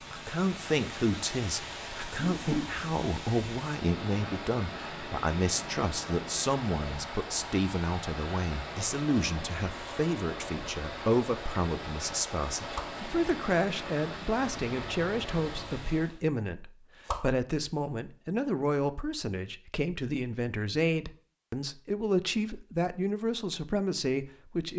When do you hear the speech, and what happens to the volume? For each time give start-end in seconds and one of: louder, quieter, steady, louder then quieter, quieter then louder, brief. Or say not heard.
0.1-24.7 steady.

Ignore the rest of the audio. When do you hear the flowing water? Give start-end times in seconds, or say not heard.
0.0-16.2.